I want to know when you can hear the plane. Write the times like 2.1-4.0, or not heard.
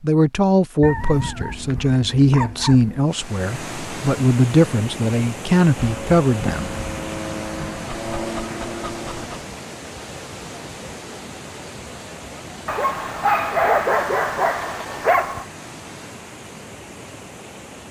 5.8-9.3.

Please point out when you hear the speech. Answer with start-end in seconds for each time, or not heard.
0.0-6.7.